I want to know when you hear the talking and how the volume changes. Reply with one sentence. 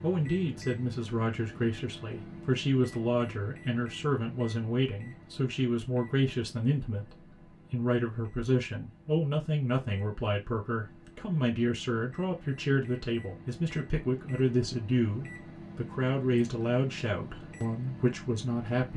You can hear the talking from 0.0 to 18.9 s, at a steady volume.